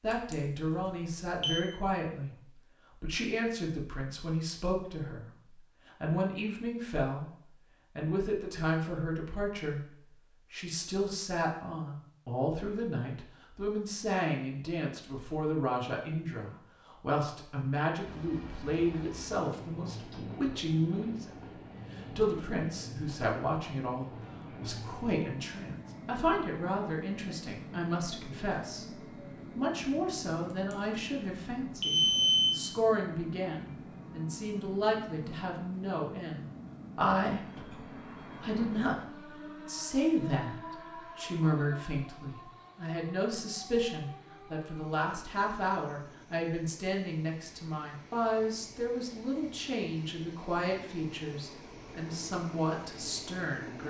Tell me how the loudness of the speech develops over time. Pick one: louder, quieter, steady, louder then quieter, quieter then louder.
steady.